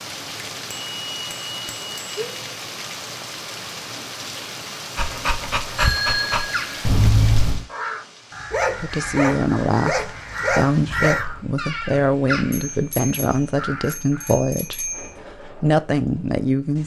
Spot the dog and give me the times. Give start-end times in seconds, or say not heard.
5.0-6.5, 8.5-11.2.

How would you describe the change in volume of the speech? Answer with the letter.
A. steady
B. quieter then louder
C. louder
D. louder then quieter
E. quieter
A.